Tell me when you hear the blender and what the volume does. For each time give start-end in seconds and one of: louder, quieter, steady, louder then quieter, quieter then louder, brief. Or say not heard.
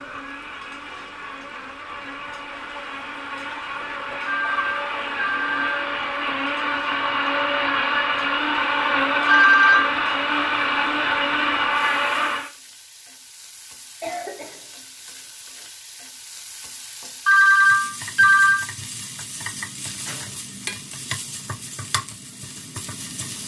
0.0-12.5 louder.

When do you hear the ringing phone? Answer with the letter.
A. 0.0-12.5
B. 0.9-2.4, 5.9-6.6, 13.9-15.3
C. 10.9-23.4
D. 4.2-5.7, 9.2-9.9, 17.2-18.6
D.